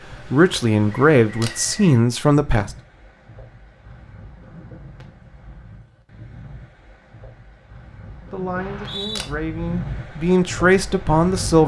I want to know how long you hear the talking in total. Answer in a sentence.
The talking can be heard for 6 seconds in total.